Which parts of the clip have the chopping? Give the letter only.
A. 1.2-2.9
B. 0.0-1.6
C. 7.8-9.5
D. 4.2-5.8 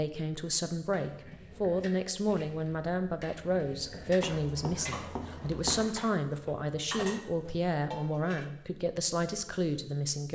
D.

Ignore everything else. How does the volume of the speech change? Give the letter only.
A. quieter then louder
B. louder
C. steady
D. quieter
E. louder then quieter
C.